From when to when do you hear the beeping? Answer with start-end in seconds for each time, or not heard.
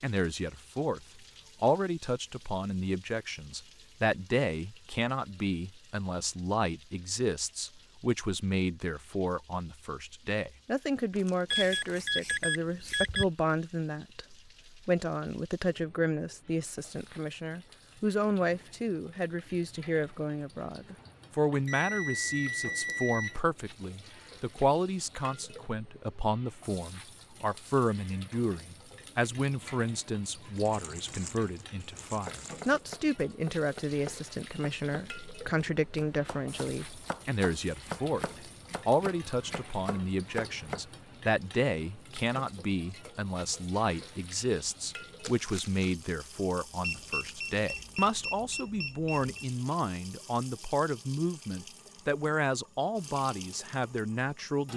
11.5-13.2, 21.6-23.4, 46.8-49.5.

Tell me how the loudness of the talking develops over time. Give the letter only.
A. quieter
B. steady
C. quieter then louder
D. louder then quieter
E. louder
B.